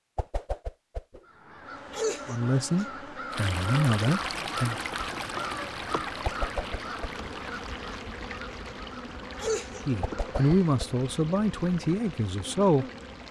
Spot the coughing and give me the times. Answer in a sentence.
The coughing can be heard from 1.9 to 2.9 s and from 9.3 to 9.8 s.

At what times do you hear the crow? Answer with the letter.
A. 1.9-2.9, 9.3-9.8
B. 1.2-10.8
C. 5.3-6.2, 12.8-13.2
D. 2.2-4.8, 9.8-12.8
B.